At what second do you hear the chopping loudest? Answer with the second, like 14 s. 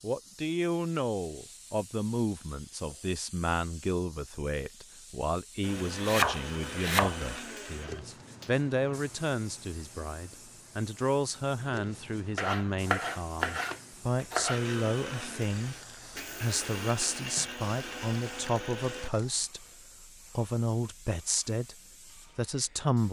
6 s.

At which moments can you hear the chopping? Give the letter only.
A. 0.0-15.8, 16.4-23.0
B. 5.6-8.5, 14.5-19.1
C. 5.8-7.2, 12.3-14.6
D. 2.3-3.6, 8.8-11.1
C.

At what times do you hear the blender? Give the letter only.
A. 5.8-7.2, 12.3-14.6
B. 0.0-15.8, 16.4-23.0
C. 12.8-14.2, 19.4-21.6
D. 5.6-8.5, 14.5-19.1
D.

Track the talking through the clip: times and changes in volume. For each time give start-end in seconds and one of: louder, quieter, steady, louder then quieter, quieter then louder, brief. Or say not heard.
0.0-15.8 steady
16.4-23.0 steady.